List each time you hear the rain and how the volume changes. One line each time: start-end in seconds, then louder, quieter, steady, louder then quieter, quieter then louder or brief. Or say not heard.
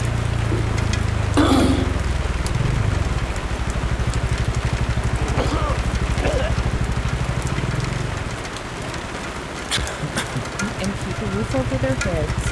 0.0-12.4 steady.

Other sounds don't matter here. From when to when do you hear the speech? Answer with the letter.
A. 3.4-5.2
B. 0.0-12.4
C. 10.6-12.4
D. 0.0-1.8
C.